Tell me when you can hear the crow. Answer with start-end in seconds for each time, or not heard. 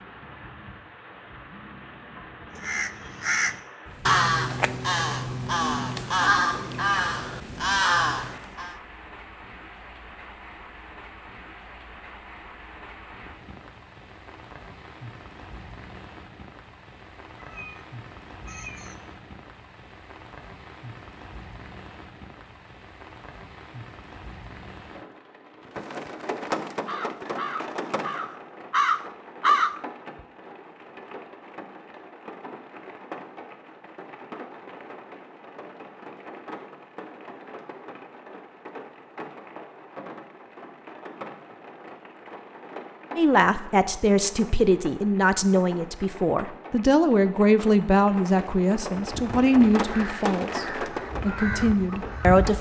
2.5-8.8, 26.9-29.8, 49.0-52.5.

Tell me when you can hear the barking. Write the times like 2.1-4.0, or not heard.
not heard.